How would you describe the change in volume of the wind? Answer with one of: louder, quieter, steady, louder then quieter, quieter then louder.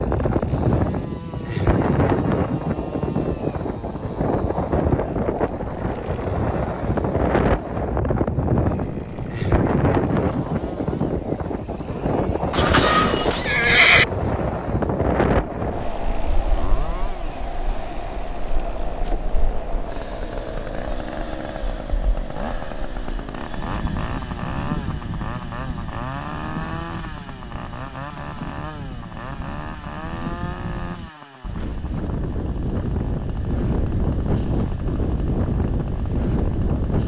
quieter then louder.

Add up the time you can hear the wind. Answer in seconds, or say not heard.
37 s.